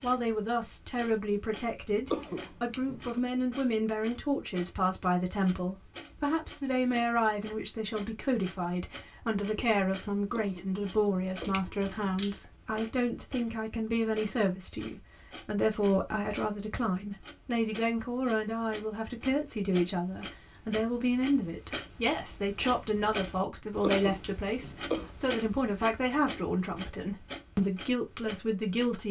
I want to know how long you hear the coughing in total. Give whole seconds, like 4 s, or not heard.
4 s.